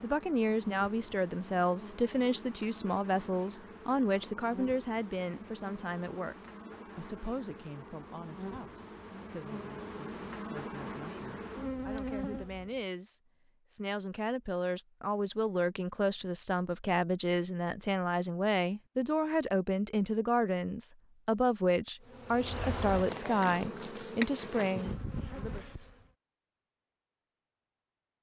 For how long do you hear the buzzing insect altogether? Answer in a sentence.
You can hear the buzzing insect for 17 seconds altogether.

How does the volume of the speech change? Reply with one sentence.
The loudness of the speech goes down, then up.